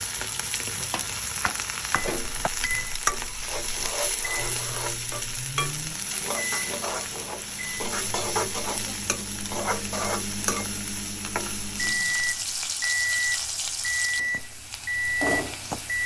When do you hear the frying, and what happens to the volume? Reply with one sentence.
The frying can be heard from 0.0 to 16.0 s, at a steady volume.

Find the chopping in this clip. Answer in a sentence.
The chopping can be heard from 0.9 to 2.5 s.